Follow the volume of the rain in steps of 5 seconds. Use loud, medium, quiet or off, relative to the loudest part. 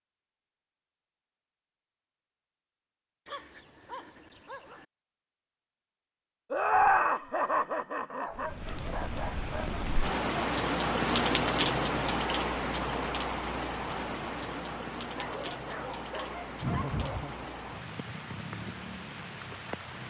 off, medium, loud, medium.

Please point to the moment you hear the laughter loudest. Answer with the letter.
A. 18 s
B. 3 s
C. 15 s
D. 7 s
D.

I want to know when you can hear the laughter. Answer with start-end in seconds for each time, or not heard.
6.5-8.5, 16.6-17.4.